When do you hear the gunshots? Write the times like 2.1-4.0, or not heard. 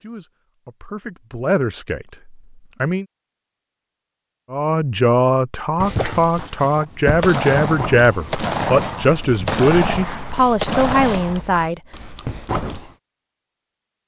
7.2-11.4.